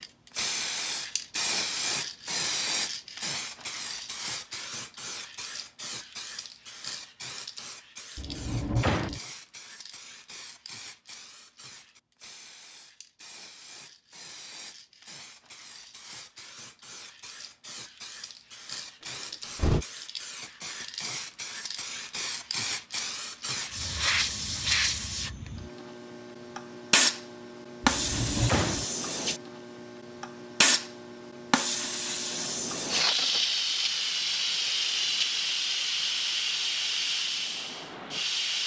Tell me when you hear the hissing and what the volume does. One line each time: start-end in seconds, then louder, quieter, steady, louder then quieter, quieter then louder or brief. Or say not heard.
0.0-38.6 quieter then louder.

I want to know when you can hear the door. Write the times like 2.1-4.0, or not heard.
8.2-9.2, 19.0-19.9, 27.8-28.9.